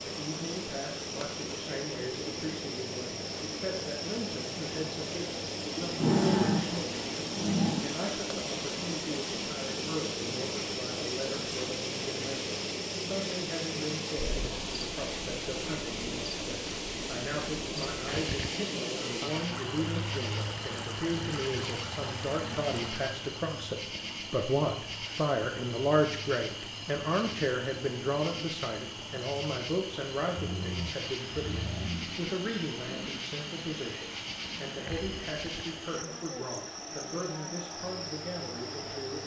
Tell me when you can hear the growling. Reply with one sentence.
You can hear the growling from 5.8 to 7.8 s, from 18.6 to 19.2 s and from 30.4 to 32.1 s.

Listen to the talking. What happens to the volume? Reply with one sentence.
The volume of the talking goes up, then down.